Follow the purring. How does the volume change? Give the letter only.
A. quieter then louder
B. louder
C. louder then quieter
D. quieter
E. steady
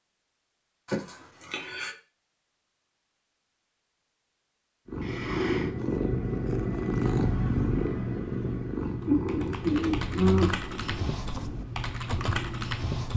D.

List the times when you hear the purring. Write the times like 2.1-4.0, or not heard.
4.8-13.1.